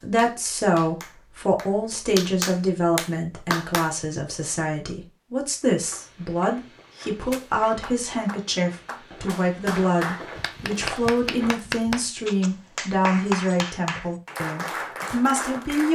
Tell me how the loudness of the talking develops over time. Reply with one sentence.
The loudness of the talking stays about the same.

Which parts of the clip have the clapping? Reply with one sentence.
You can hear the clapping from 0.0 to 4.0 s and from 7.3 to 15.8 s.